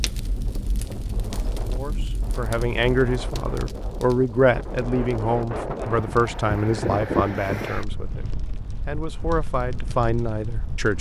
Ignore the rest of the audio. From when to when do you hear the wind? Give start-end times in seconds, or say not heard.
0.0-10.9.